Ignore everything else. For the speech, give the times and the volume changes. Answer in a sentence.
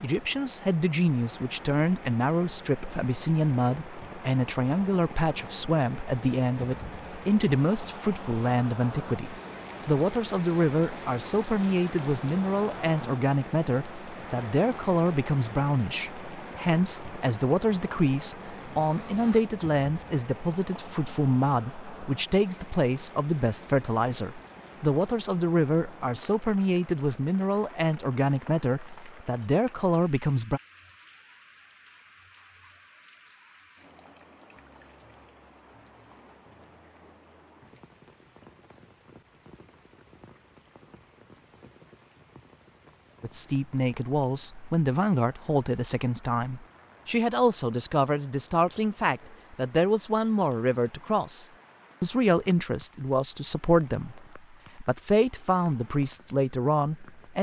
You can hear the speech from 0.0 to 30.6 s, at a steady volume; and from 43.2 to 57.3 s, at a steady volume.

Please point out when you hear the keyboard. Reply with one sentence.
The keyboard can't be heard in this clip.